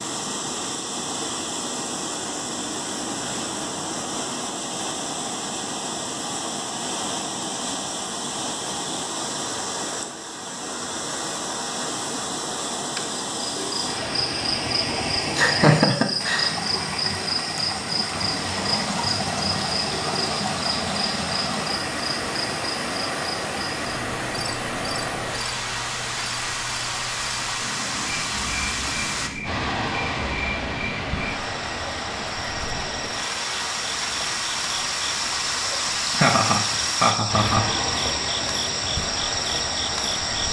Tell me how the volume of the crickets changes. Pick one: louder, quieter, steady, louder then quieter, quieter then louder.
quieter then louder.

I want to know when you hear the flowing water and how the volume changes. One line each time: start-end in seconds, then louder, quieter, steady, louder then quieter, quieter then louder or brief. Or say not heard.
0.0-40.4 steady.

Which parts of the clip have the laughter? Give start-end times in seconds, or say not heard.
15.3-16.6, 36.0-37.7.